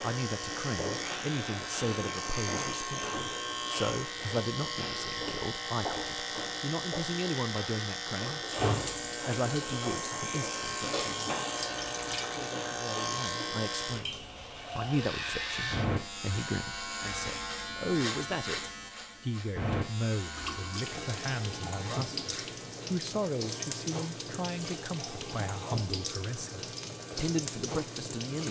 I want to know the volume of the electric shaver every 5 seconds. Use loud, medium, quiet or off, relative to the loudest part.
loud, loud, loud, loud, medium, quiet.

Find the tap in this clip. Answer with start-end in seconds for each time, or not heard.
8.6-12.6, 20.3-28.4.